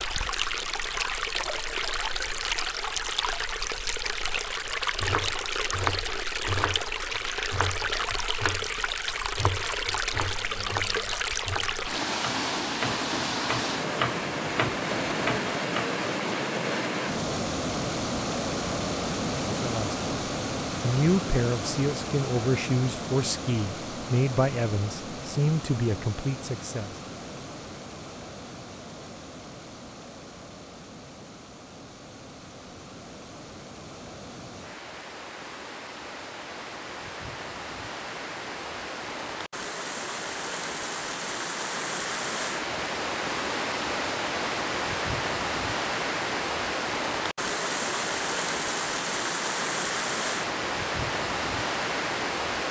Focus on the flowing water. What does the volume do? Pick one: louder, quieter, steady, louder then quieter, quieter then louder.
quieter then louder.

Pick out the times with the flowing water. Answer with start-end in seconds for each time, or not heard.
0.0-52.6.